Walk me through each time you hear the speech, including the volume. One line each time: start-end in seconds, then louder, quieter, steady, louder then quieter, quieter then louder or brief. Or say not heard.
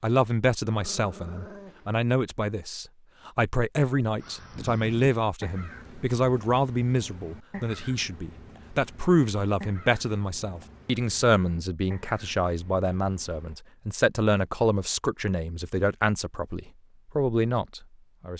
0.0-18.3 steady.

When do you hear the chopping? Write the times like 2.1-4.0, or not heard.
not heard.